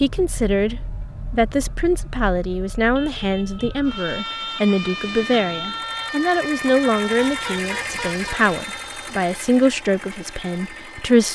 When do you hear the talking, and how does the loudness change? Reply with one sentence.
You can hear the talking from 0.0 to 11.2 s, at a steady volume.